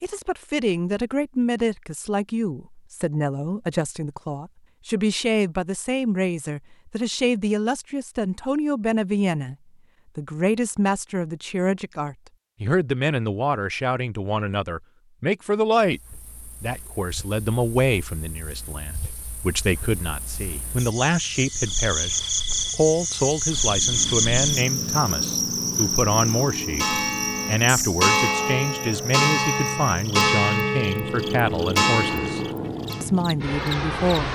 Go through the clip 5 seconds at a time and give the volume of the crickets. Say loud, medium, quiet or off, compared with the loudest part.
off, off, off, quiet, loud, loud, quiet.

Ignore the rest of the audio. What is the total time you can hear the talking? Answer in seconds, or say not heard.
32 s.